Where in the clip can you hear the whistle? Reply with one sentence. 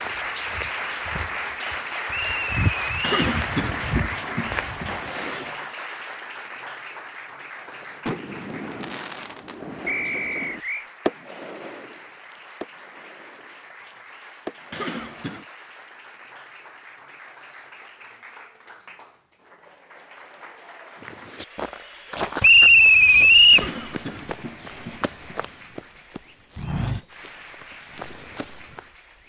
You can hear the whistle from 2.0 to 3.2 s, from 9.8 to 10.8 s and from 22.4 to 23.7 s.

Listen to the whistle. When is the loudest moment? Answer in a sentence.
The volume of the whistle peaks at 23 seconds.